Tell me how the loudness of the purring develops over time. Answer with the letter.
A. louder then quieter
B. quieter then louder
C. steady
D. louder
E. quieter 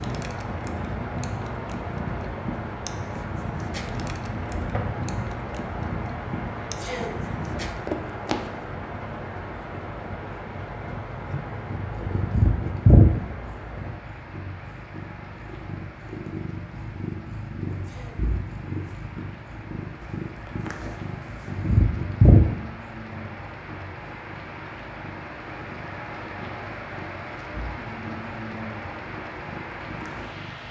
A.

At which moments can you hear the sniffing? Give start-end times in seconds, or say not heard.
6.7-7.2, 17.7-18.3.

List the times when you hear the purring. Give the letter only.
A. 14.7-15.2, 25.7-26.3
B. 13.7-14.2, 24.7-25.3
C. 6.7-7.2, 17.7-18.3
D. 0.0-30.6
D.